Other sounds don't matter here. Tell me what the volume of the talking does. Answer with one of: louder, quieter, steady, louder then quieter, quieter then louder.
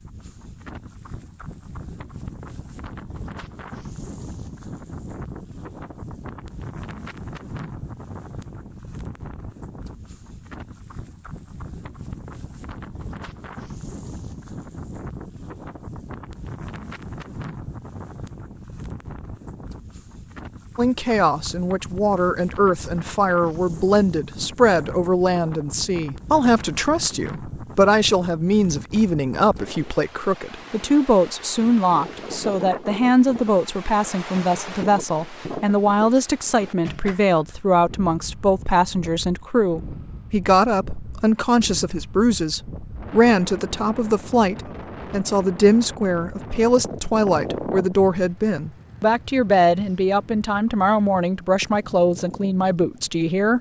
steady.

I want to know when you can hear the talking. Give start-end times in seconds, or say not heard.
20.8-53.5.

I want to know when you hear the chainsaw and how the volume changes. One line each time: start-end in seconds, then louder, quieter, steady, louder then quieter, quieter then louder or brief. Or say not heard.
not heard.